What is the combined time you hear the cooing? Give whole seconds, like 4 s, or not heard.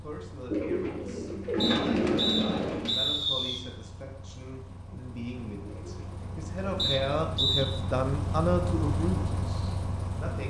4 s.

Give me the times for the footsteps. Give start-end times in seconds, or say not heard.
not heard.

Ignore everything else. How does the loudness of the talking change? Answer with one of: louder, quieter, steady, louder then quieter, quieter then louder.
louder.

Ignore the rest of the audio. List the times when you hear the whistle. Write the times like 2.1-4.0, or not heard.
1.6-3.6, 6.8-7.7.